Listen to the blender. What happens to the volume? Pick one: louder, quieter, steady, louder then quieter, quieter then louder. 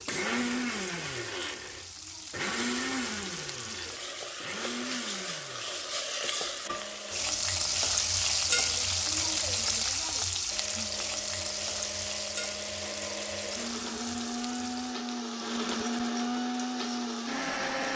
quieter then louder.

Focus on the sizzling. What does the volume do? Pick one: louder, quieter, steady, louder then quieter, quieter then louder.
louder then quieter.